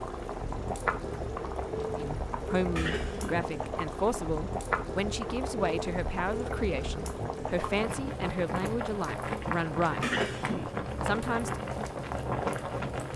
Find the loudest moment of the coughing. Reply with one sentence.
The loudest moment of the coughing is at 10 seconds.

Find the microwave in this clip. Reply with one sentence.
The microwave can't be heard in this clip.